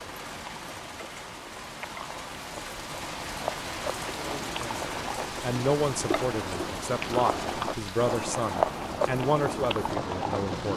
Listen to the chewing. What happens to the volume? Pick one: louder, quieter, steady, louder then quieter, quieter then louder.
louder.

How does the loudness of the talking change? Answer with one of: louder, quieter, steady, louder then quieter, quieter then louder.
steady.